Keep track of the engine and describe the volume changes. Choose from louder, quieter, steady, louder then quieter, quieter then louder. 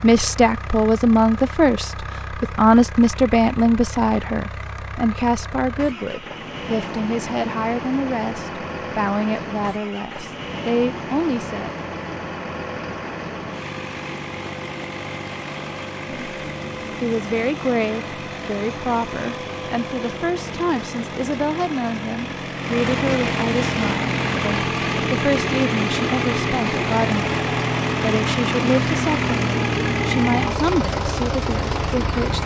louder.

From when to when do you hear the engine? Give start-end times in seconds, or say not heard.
0.0-32.4.